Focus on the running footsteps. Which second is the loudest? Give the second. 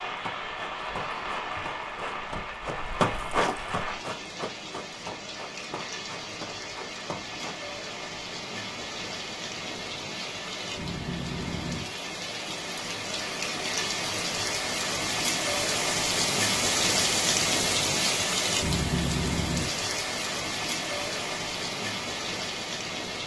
3 s.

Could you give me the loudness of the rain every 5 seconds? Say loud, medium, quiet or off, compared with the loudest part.
medium, medium, medium, loud, medium.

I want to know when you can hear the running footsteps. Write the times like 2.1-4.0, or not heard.
0.2-7.6.